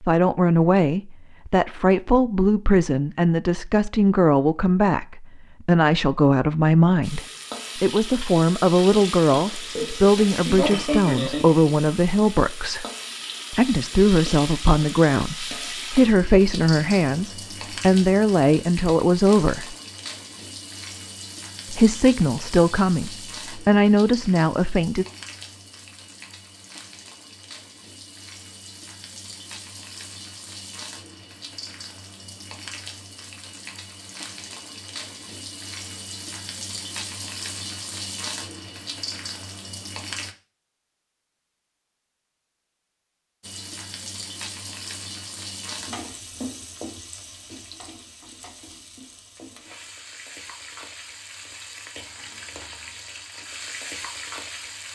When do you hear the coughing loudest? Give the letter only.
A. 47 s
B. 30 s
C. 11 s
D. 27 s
C.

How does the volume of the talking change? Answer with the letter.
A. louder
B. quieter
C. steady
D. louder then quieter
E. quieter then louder
C.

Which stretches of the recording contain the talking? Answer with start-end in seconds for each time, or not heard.
0.0-12.8, 13.5-19.8, 21.7-25.1.